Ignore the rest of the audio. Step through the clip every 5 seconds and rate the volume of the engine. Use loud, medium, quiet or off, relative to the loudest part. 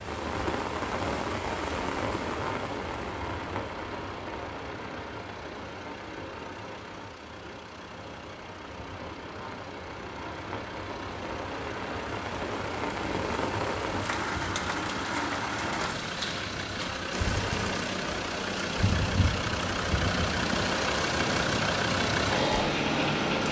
quiet, quiet, quiet, medium, loud.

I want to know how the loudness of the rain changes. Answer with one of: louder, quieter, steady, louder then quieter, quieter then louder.
quieter then louder.